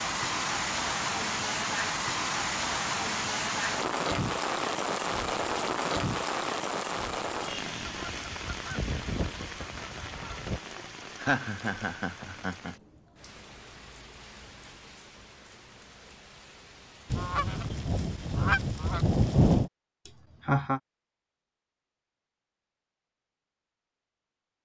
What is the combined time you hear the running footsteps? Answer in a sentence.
You can't hear the running footsteps here.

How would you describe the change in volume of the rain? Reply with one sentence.
The loudness of the rain goes down.